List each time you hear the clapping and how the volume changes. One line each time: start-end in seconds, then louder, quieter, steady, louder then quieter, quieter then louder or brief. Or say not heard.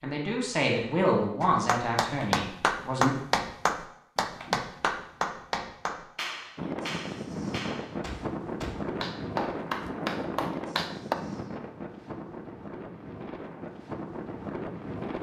1.4-11.2 quieter then louder.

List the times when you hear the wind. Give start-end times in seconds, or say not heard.
6.5-15.1.